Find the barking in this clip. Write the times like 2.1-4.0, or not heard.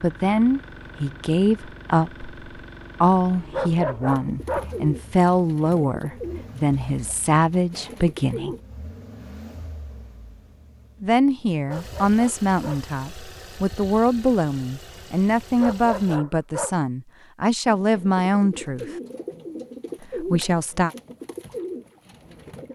3.5-4.8, 11.7-12.9, 15.6-16.8.